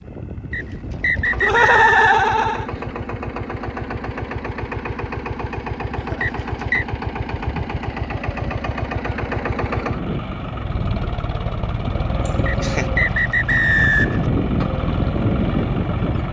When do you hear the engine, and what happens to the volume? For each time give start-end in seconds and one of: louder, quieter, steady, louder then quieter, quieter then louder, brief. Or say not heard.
0.0-16.2 louder.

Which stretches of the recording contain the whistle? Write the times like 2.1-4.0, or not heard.
0.5-2.2, 6.2-6.8, 12.4-14.2.